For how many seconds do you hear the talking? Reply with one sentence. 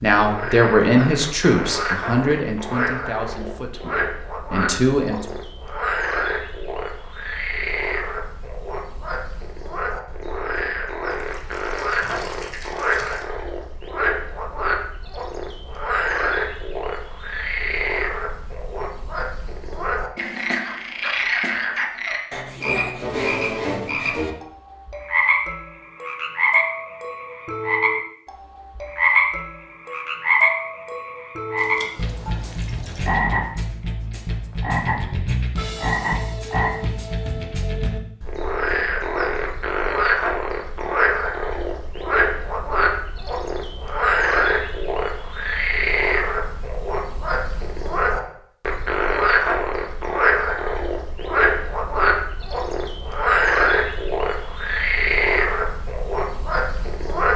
You can hear the talking for 5 seconds altogether.